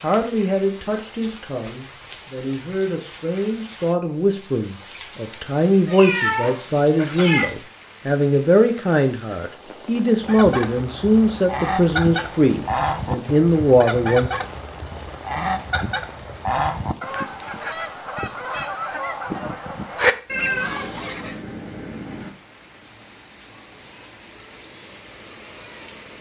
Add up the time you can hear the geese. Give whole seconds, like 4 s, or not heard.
11 s.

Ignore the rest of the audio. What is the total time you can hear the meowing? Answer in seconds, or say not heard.
4 s.